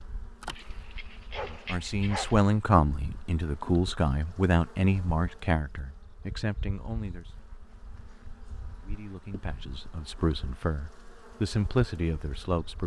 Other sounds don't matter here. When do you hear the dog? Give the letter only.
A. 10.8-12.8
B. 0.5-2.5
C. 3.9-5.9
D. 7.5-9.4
B.